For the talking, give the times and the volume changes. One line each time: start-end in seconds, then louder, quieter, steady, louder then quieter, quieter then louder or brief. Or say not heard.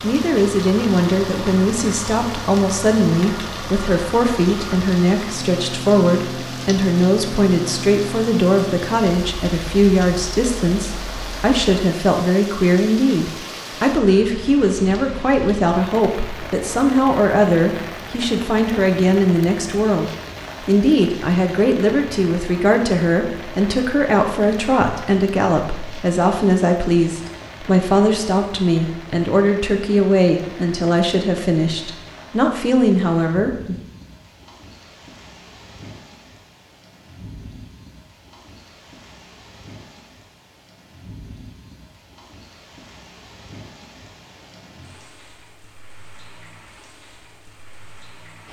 0.0-33.8 steady.